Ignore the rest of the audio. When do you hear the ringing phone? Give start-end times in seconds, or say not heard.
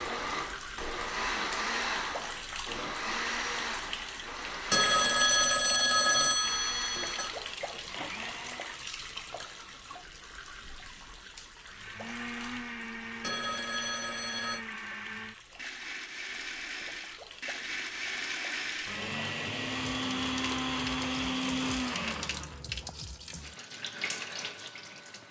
4.7-7.3, 13.2-14.7.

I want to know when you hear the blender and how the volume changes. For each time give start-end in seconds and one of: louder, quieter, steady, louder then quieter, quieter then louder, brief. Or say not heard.
0.0-8.8 quieter
11.7-22.6 louder.